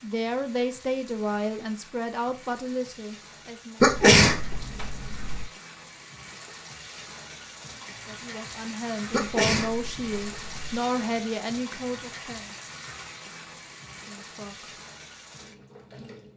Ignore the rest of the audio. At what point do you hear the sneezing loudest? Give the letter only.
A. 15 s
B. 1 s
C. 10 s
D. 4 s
D.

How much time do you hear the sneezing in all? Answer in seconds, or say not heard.
3 s.